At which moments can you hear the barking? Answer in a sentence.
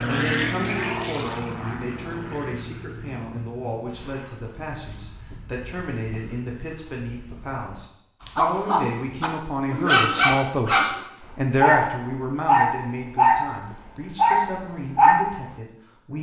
The barking can be heard from 8.2 to 15.3 s.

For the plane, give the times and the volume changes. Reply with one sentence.
The plane can be heard from 0.0 to 7.9 s, getting quieter.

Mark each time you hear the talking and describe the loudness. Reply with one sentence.
The talking can be heard from 0.1 to 16.1 s, getting louder then quieter.